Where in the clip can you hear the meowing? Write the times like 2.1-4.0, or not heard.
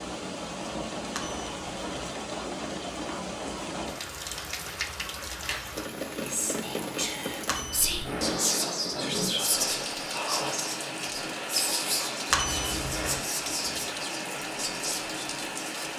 not heard.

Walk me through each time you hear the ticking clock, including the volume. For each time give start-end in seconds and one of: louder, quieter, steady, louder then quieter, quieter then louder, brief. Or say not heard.
not heard.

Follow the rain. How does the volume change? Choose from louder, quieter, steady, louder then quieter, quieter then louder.
steady.